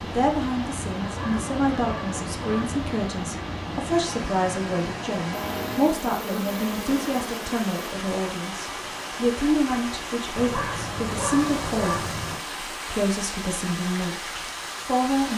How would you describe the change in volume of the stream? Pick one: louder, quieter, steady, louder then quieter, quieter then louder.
steady.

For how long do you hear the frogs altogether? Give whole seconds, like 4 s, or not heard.
not heard.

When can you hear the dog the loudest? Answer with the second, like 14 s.
11 s.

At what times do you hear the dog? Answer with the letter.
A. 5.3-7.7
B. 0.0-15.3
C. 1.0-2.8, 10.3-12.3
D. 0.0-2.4
C.